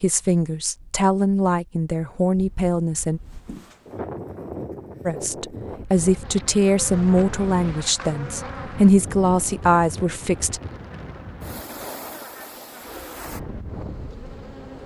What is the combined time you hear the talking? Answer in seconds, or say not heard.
9 s.